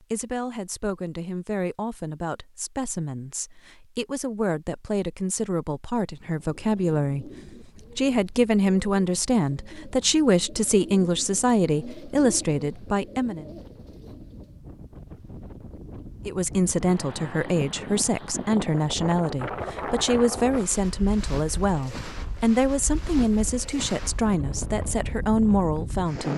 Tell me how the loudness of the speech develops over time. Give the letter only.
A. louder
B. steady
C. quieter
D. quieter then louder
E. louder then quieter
A.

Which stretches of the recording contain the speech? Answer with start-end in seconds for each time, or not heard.
0.0-13.4, 16.2-26.3.